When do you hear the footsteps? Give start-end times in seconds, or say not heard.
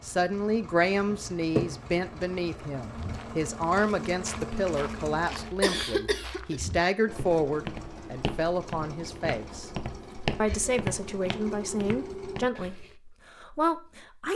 2.9-12.9.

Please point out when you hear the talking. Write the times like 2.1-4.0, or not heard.
0.0-9.7, 10.3-14.3.